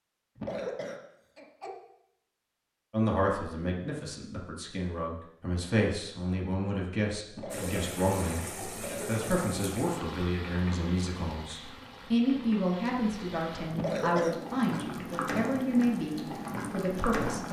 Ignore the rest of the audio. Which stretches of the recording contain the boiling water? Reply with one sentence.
You can hear the boiling water from 7.5 to 17.4 s.